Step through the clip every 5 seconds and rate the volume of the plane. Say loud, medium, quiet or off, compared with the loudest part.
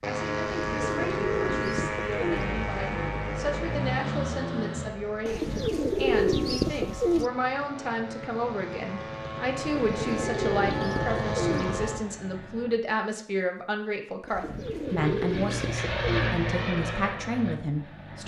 loud, medium, loud, loud.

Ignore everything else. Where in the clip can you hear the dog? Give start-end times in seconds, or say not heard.
not heard.